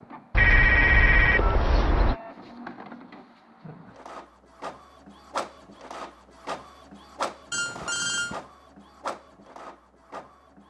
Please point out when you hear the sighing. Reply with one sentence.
The sighing can't be heard in this clip.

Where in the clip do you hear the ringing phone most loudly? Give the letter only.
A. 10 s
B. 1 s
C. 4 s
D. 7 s
B.